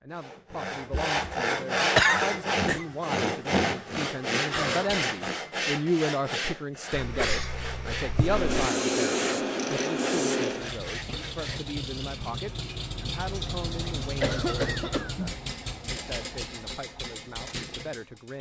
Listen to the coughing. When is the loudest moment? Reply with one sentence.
The loudest moment of the coughing is at 2 seconds.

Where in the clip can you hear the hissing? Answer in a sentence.
The hissing can be heard from 8.2 to 10.7 s.